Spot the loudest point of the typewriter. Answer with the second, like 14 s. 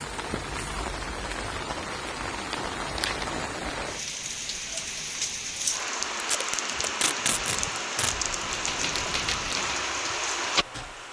9 s.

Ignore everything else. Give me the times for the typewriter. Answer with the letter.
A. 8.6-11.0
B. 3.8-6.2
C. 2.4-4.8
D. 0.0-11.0
A.